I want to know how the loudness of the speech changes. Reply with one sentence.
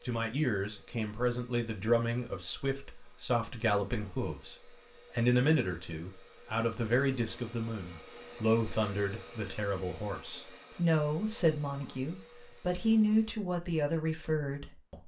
The volume of the speech stays about the same.